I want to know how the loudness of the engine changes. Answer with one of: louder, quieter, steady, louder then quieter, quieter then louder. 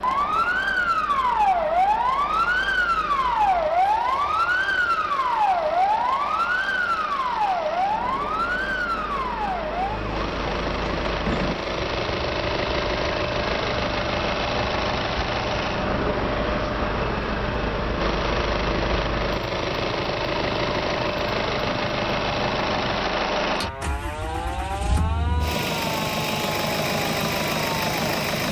louder.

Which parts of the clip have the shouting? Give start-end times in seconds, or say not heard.
not heard.